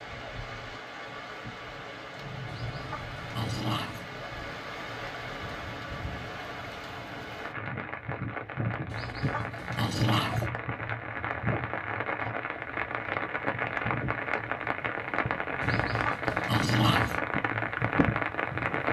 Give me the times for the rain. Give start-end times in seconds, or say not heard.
0.0-18.8.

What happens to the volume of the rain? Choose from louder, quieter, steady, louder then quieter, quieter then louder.
louder.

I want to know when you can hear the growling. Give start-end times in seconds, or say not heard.
2.5-4.0, 8.9-10.5, 15.6-17.2.